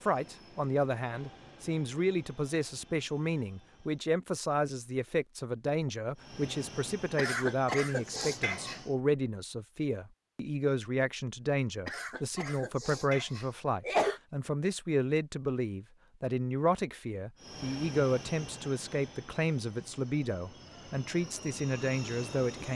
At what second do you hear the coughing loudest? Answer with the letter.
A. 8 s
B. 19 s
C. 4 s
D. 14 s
D.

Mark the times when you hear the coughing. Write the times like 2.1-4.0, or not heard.
7.2-8.8, 11.8-14.2.